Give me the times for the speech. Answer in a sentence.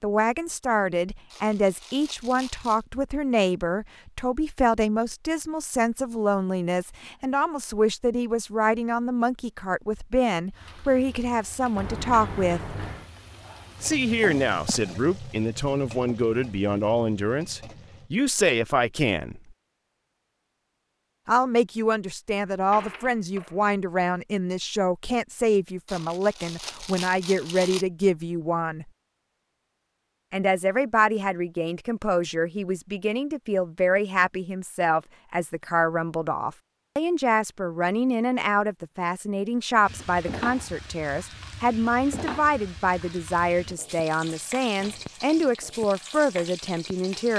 The speech can be heard from 0.0 to 12.8 s, from 13.8 to 19.4 s, from 21.2 to 28.9 s and from 30.3 to 47.3 s.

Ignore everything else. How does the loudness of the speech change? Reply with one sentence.
The volume of the speech stays about the same.